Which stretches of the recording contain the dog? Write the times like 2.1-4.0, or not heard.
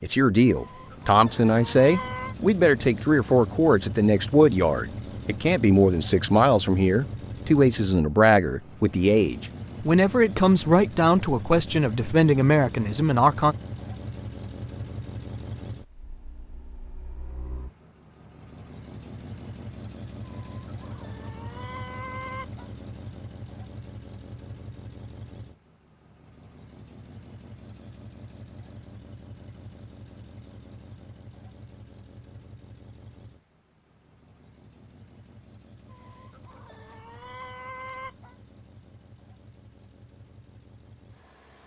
not heard.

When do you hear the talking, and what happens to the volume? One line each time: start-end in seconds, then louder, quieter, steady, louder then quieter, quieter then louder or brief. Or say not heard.
0.0-13.6 steady.